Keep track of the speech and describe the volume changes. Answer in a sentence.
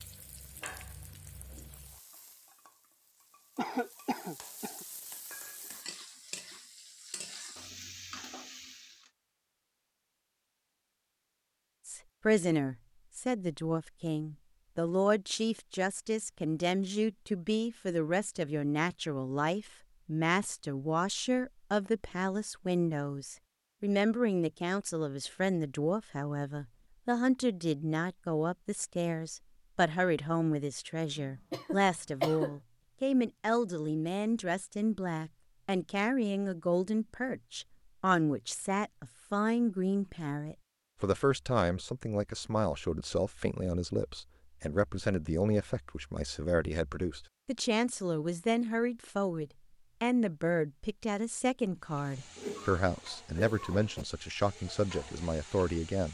The loudness of the speech stays about the same.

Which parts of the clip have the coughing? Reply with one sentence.
You can hear the coughing from 3.5 to 4.8 s, from 31.1 to 32.5 s and from 52.4 to 54.0 s.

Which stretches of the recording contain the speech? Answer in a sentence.
You can hear the speech from 11.8 to 56.0 s.